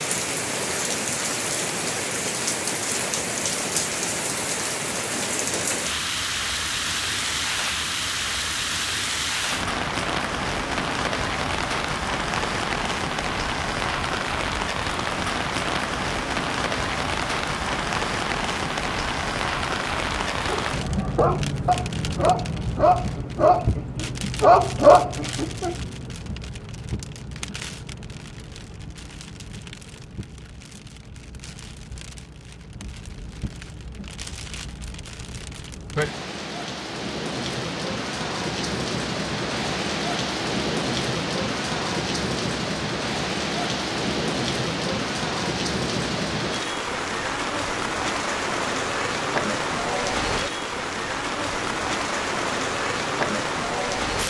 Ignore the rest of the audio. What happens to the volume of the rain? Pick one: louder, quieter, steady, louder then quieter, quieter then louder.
quieter then louder.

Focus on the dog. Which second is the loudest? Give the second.
25 s.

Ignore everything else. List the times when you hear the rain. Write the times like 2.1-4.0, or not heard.
0.0-54.2.